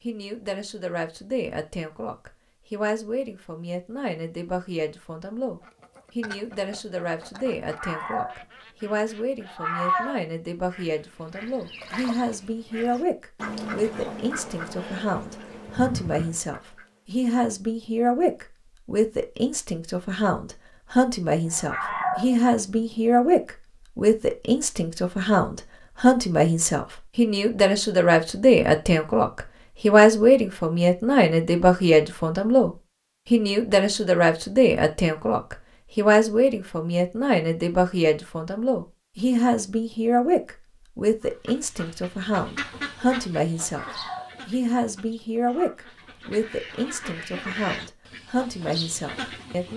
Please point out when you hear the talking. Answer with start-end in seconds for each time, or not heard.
0.0-49.7.